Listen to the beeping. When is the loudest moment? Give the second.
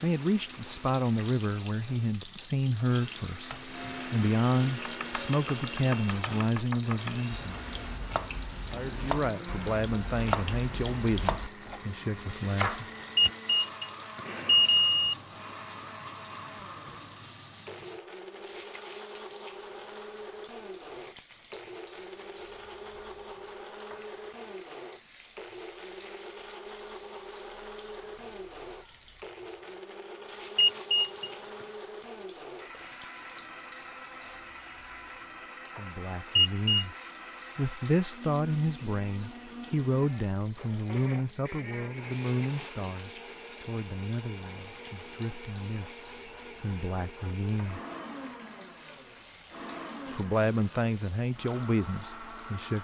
15 s.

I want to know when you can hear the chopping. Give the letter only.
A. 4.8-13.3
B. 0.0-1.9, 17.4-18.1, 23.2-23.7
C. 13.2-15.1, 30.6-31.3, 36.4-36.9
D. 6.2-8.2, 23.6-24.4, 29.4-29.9
A.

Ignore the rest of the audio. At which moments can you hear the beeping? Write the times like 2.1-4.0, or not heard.
13.2-15.1, 30.6-31.3, 36.4-36.9.